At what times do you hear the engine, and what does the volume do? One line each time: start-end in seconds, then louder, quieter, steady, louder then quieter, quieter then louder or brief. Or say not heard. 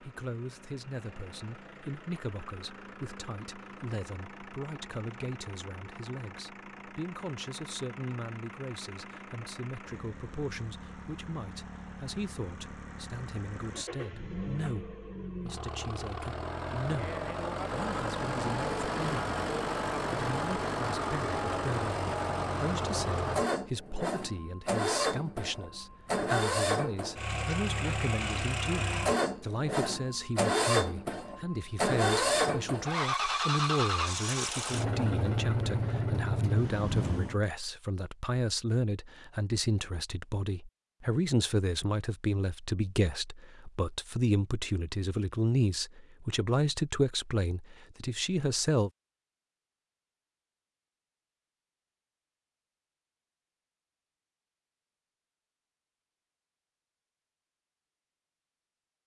0.0-37.4 louder.